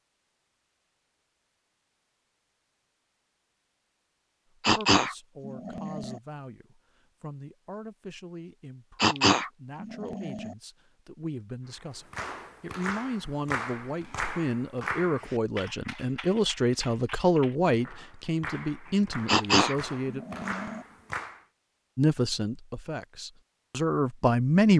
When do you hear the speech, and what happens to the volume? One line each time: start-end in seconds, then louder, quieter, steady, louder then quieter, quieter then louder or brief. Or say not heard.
4.5-20.2 louder
21.9-24.7 brief.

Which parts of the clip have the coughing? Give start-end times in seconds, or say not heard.
4.7-6.2, 9.0-10.6, 19.2-20.8.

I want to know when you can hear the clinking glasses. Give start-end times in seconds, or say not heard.
not heard.